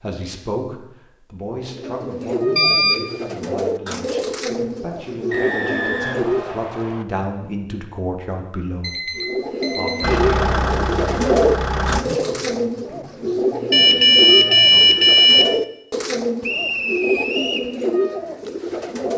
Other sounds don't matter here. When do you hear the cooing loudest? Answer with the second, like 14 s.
11 s.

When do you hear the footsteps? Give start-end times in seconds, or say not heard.
not heard.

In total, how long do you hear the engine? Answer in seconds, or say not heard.
2 s.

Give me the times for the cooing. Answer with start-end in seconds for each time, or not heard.
1.6-6.7, 9.2-19.1.